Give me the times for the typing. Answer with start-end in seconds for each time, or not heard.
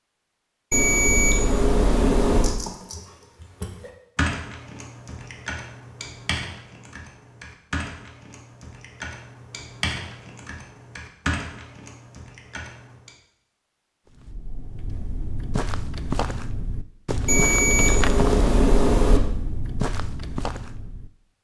2.4-13.1.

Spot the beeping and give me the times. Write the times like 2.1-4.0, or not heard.
0.7-2.5, 17.2-19.2.